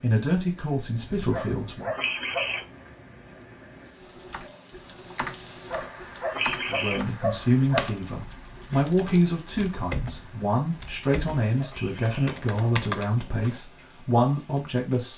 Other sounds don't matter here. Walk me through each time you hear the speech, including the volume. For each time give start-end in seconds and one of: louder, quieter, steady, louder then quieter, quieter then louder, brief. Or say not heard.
0.0-1.9 brief
6.7-15.1 steady.